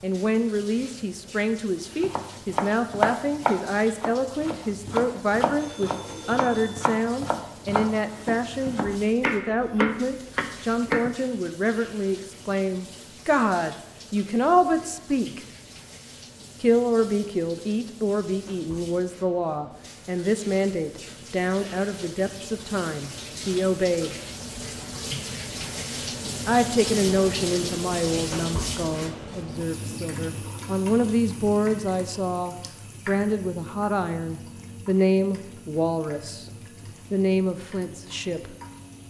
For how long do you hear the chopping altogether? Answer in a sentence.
The chopping can be heard for 9 seconds in total.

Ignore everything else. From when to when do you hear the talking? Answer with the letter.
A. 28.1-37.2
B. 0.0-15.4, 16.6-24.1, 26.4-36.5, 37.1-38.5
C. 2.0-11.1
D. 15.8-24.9
B.